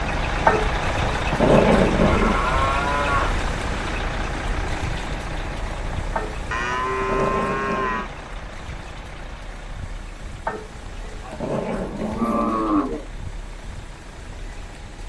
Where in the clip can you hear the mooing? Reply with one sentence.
The mooing can be heard from 2.0 to 3.4 s, from 6.5 to 8.1 s and from 11.2 to 13.1 s.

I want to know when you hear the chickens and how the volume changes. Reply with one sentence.
The chickens can't be heard in this clip.